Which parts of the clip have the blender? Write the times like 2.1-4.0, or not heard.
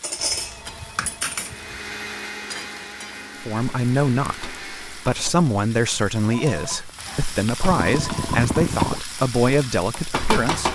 1.4-5.2.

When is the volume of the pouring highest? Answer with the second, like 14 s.
9 s.